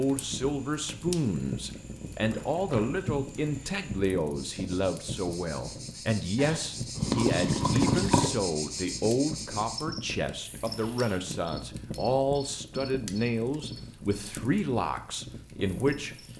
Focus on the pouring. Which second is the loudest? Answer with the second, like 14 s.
8 s.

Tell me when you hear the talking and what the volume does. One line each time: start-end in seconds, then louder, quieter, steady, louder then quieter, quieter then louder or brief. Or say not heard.
0.0-16.1 steady.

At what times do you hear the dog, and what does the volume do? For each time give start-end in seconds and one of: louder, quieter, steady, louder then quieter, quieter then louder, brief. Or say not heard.
not heard.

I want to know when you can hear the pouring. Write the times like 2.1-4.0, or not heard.
6.3-8.3.